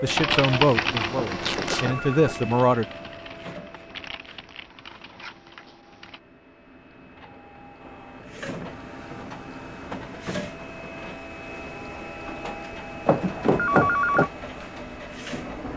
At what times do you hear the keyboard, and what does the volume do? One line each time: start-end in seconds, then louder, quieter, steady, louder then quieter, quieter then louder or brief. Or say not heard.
0.1-6.2 quieter.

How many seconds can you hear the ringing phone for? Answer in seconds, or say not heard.
2 s.